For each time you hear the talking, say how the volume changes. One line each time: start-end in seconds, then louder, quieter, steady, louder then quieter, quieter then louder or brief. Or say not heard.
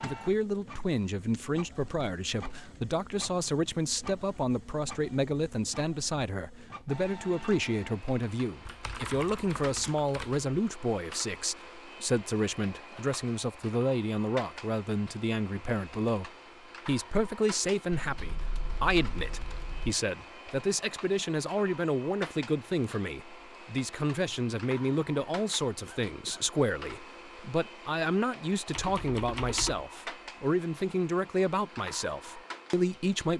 0.0-33.3 steady.